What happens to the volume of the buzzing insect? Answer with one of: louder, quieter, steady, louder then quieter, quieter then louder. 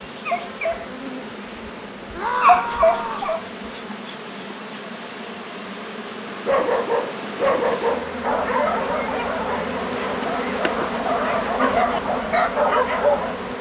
louder.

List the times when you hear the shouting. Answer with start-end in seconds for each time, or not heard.
2.1-3.3.